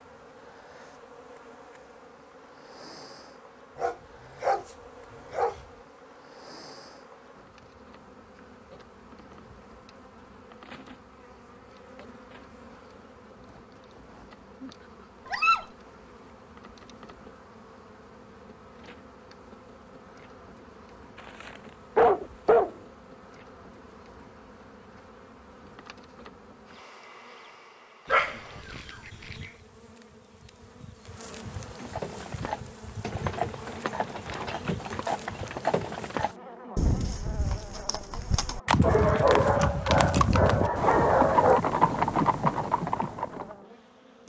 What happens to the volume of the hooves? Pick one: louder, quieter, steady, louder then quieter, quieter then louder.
louder.